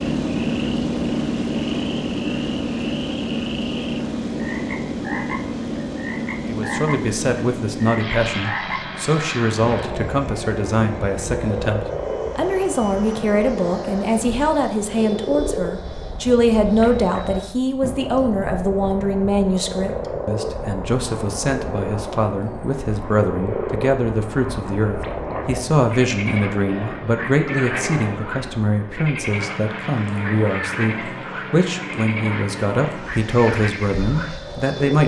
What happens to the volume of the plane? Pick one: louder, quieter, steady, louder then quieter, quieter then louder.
quieter then louder.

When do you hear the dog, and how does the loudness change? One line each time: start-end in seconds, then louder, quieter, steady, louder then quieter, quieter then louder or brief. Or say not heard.
not heard.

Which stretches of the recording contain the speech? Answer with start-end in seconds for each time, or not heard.
6.5-35.0.